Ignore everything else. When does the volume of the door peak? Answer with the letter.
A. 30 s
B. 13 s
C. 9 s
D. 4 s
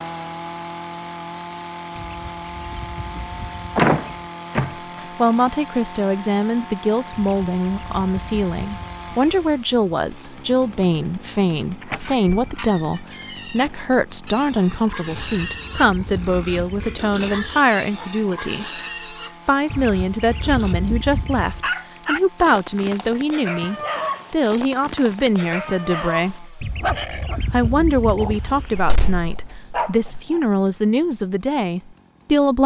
D.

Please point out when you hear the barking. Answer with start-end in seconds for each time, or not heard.
21.3-30.4.